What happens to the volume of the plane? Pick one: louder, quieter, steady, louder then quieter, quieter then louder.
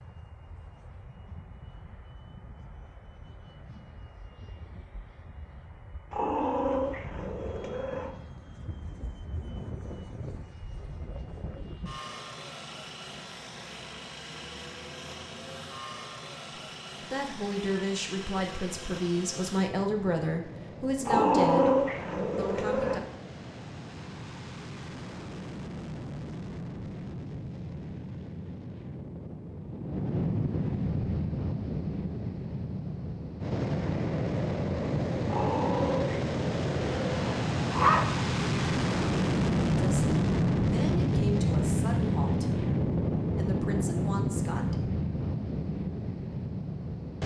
louder.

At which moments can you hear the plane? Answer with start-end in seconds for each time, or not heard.
0.0-47.2.